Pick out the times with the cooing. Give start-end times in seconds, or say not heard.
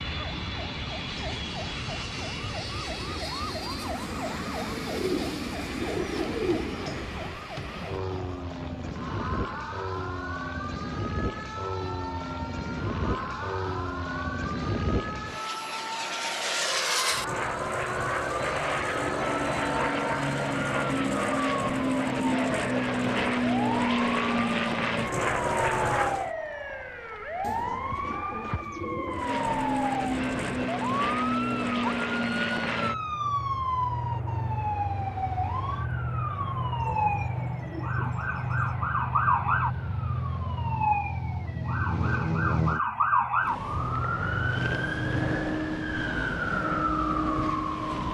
4.9-7.0, 27.4-29.4, 36.8-38.8.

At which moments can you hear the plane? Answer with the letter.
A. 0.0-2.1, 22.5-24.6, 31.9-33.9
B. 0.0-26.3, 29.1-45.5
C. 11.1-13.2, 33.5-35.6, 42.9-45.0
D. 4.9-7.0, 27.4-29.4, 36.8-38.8
B.